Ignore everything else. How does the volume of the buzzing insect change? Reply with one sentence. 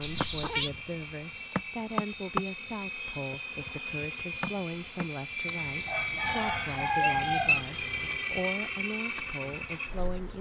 The volume of the buzzing insect goes down.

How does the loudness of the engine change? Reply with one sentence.
The volume of the engine goes up.